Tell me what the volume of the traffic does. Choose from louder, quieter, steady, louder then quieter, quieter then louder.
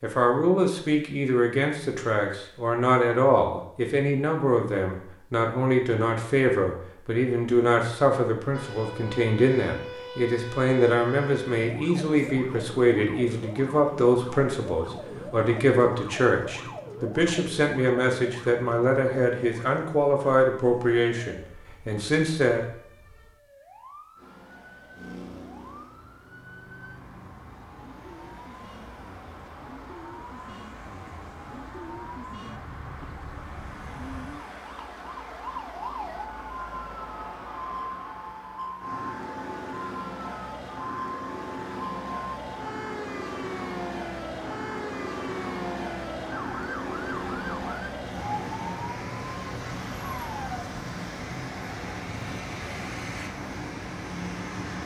louder.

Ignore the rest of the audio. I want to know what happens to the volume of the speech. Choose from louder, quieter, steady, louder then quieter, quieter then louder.
steady.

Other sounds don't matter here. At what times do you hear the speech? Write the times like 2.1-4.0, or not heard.
0.0-22.6.